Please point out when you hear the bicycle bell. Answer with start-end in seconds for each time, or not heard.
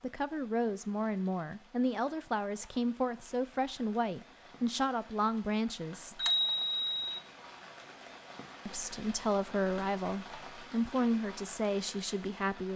6.2-7.2.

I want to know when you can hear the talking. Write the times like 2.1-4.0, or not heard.
0.0-6.2, 8.7-12.7.